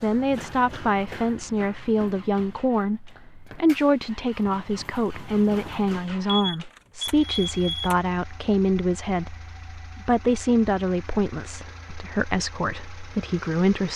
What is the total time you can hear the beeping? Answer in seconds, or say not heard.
2 s.